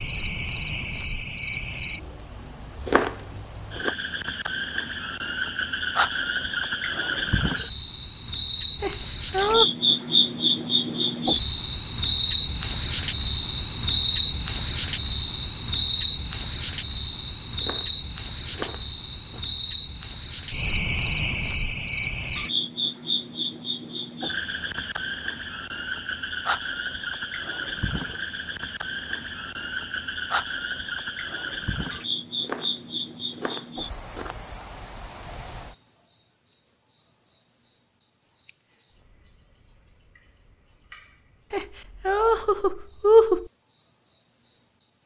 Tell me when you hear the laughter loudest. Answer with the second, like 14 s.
43 s.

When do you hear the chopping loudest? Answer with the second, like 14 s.
3 s.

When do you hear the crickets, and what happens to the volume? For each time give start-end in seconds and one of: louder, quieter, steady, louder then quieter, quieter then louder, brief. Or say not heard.
0.0-45.0 louder then quieter.